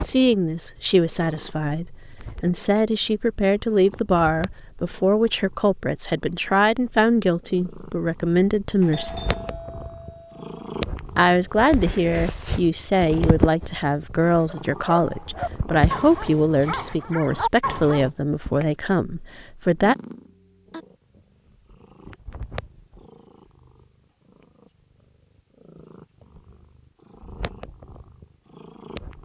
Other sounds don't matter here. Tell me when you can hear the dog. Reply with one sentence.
You can hear the dog from 14.4 to 18.1 s.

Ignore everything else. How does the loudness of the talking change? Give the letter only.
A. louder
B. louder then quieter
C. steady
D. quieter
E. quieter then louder
C.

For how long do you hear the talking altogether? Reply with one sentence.
You can hear the talking for 18 seconds altogether.